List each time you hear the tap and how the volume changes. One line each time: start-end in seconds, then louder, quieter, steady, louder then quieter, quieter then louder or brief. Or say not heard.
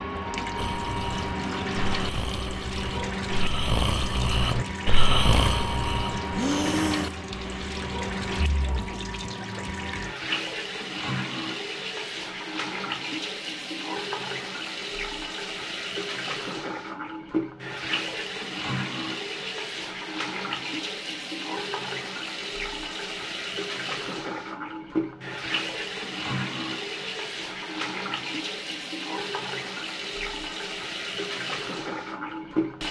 0.0-32.8 steady.